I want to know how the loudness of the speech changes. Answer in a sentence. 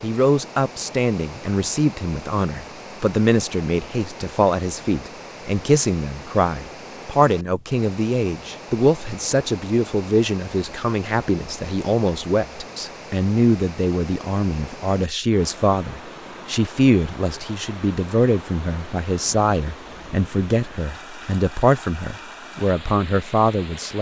The volume of the speech stays about the same.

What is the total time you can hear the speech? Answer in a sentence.
You can hear the speech for 24 seconds altogether.